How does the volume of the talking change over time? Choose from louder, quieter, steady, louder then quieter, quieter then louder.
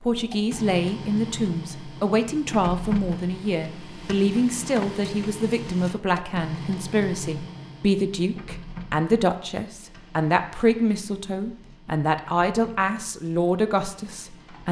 steady.